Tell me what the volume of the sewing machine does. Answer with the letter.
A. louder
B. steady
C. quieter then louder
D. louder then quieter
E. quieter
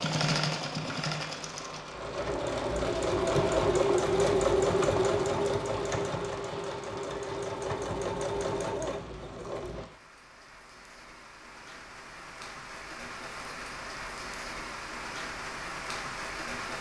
D.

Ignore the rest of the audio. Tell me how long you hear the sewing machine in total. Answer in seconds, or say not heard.
10 s.